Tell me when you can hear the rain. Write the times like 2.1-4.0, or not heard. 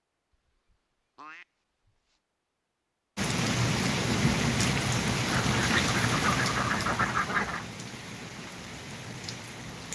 3.1-9.9.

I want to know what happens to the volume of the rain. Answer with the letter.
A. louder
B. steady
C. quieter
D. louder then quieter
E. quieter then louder
C.